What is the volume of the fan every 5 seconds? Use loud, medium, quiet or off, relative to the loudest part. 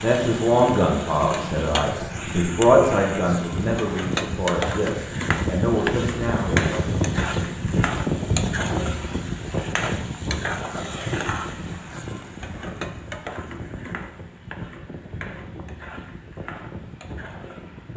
medium, loud, medium, quiet.